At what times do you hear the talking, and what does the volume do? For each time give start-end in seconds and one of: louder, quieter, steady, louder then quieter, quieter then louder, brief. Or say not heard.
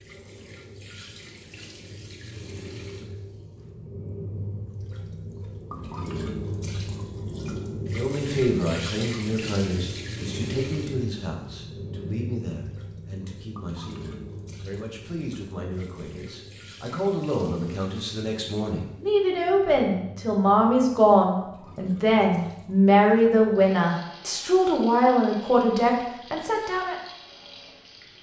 7.9-26.9 quieter then louder.